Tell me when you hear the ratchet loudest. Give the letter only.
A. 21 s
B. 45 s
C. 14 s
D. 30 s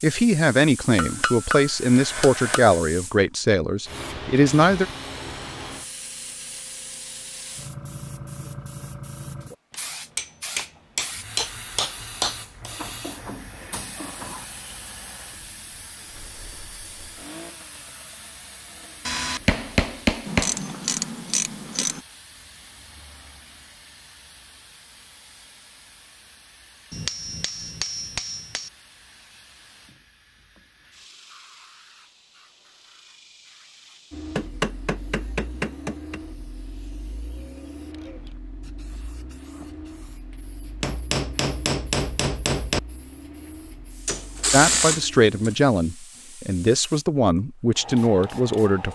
B.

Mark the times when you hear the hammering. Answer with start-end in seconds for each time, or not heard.
0.9-2.8, 9.7-12.7, 19.1-20.6, 26.9-28.7, 34.4-36.2, 40.8-42.8.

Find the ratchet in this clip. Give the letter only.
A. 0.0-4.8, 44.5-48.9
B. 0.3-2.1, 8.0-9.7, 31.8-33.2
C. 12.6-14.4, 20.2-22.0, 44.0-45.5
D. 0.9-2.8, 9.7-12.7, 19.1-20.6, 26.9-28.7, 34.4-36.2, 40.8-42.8
C.